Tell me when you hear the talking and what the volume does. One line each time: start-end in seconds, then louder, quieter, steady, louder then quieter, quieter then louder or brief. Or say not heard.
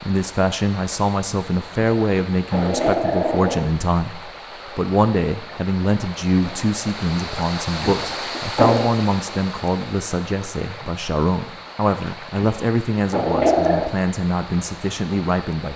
0.0-15.7 steady.